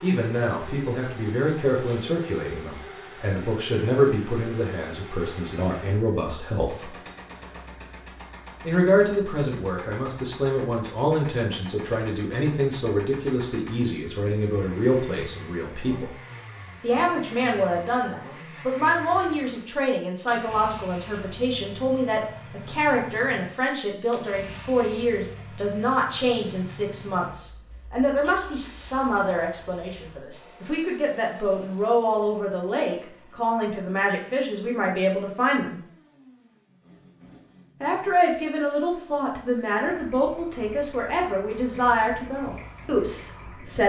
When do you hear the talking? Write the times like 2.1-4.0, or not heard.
0.0-7.0, 8.6-16.1, 16.8-35.8, 37.8-43.8.